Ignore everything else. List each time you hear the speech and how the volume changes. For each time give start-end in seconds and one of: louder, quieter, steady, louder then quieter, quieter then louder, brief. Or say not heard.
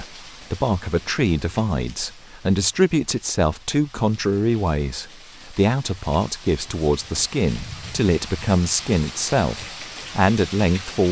0.0-11.0 steady.